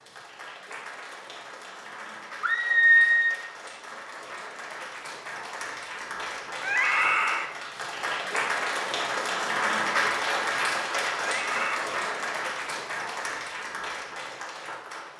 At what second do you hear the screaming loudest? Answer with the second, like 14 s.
3 s.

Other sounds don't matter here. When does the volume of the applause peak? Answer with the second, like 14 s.
10 s.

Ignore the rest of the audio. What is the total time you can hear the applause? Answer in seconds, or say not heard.
15 s.